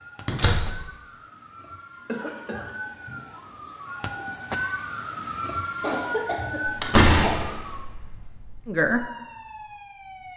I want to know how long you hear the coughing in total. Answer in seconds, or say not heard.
2 s.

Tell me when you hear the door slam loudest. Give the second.
7 s.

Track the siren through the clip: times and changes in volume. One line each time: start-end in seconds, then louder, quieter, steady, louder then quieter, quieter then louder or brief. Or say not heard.
0.0-10.3 louder then quieter.